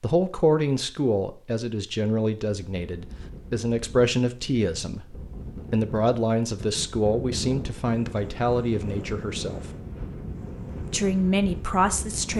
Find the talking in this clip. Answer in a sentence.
The talking can be heard from 0.0 to 9.6 s and from 10.9 to 12.3 s.